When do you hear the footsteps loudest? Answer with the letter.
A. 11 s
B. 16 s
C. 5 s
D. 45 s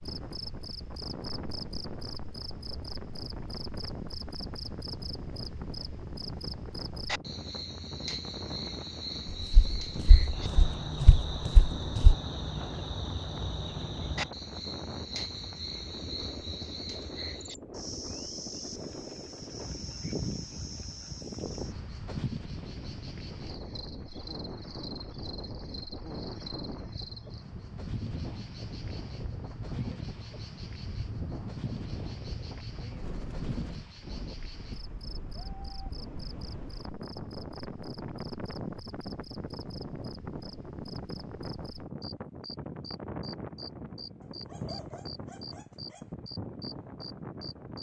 A.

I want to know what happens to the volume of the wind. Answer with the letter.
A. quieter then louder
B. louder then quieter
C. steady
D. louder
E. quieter
C.